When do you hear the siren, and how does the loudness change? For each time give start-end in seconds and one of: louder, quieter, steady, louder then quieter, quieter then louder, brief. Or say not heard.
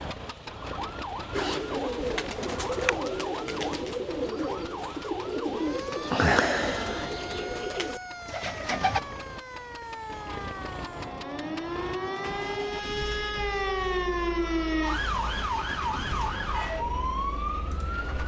0.0-18.2 louder.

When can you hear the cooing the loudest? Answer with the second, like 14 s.
6 s.